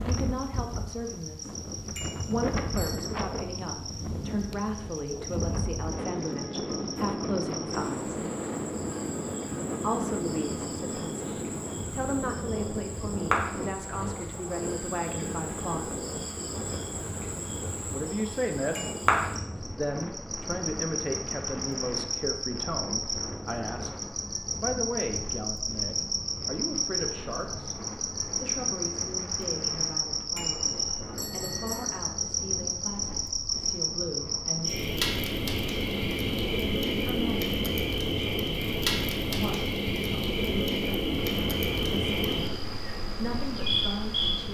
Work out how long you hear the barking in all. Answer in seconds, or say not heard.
not heard.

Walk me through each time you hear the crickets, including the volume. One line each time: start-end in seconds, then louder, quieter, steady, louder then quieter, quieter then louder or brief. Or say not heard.
0.0-44.4 louder.